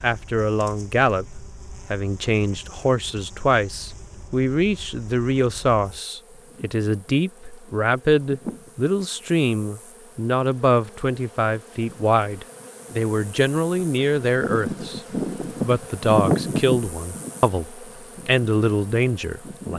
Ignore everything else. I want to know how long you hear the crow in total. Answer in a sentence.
The crow can't be heard in this clip.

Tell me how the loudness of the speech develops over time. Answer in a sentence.
The loudness of the speech stays about the same.